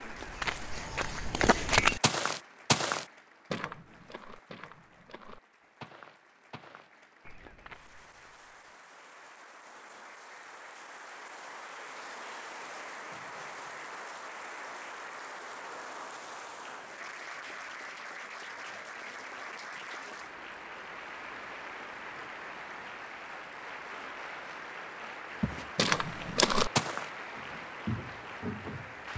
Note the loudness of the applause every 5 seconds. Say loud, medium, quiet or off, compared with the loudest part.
medium, quiet, loud, loud, loud, loud.